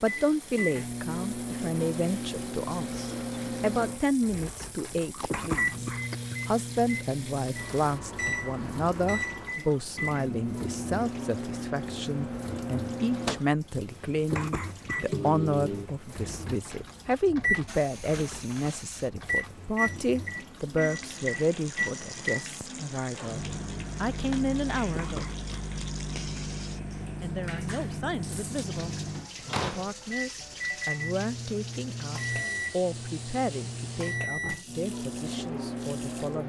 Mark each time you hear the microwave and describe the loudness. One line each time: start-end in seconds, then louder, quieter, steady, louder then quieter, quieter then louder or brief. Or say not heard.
0.0-36.4 steady.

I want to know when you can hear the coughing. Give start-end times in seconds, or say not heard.
5.2-6.3, 14.3-15.1, 24.9-25.6.